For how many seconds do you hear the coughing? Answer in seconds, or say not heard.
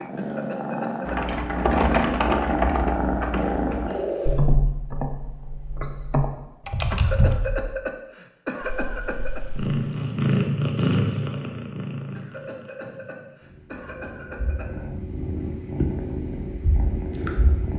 7 s.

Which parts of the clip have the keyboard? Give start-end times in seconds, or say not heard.
1.1-7.8.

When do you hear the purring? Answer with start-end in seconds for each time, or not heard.
0.0-4.4, 8.6-17.7.